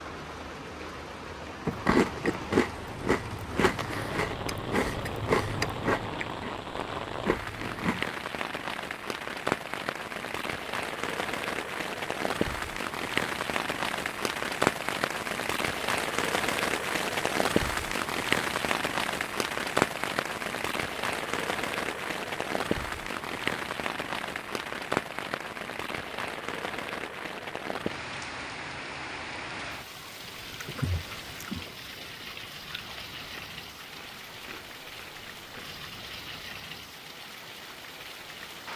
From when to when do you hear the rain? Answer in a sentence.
You can hear the rain from 0.0 to 38.7 s.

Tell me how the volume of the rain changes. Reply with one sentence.
The volume of the rain goes up, then down.